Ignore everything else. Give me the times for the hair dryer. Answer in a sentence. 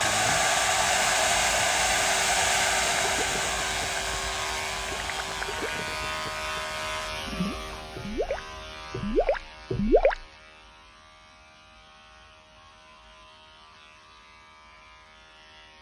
You can hear the hair dryer from 0.0 to 7.1 s.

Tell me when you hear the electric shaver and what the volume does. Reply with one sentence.
You can hear the electric shaver from 0.0 to 15.7 s, getting quieter.